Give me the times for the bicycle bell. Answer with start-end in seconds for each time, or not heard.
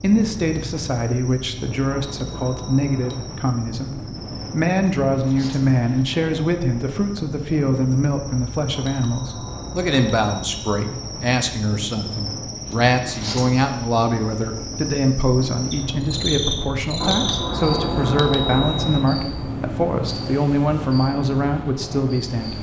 1.9-3.2, 8.8-10.8, 17.0-19.0.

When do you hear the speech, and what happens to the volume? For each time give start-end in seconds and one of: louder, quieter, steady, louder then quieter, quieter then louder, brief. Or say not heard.
0.0-22.5 steady.